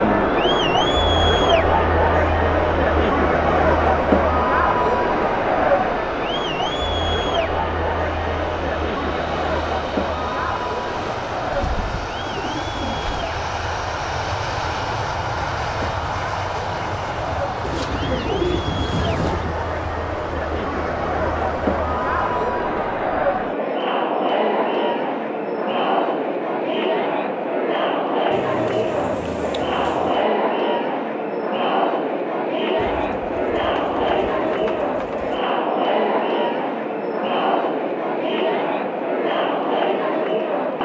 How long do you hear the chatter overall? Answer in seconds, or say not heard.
41 s.